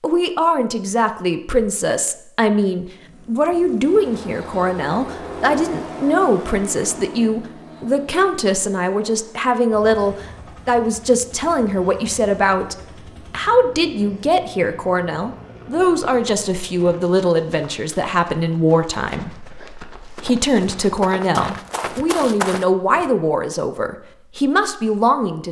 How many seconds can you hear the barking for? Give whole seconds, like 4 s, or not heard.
not heard.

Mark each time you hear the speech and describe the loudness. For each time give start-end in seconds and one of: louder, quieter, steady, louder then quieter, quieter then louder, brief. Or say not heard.
0.0-25.4 steady.